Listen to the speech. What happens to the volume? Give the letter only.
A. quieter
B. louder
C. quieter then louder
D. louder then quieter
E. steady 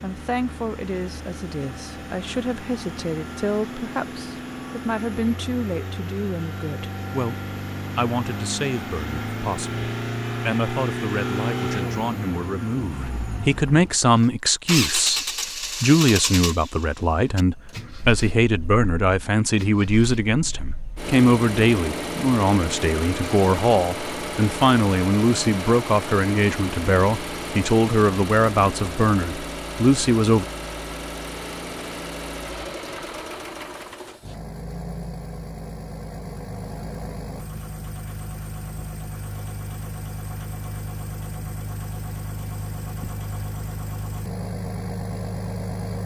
B.